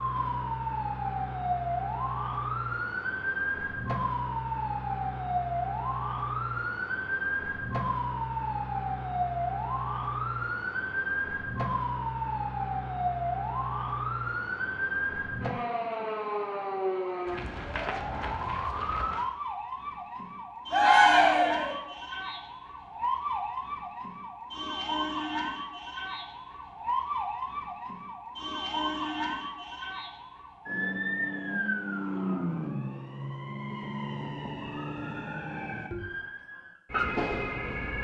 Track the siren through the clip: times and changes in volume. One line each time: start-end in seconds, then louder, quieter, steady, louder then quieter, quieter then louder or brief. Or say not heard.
0.0-37.9 steady.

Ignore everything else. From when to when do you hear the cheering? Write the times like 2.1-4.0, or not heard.
20.7-21.8.